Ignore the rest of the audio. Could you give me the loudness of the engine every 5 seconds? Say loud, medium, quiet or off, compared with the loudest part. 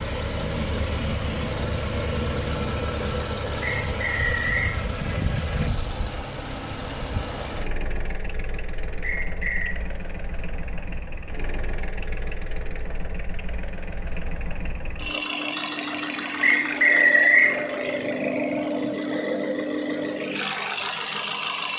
loud, medium, medium, loud, loud.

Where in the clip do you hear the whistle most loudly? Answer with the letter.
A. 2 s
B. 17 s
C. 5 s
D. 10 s
B.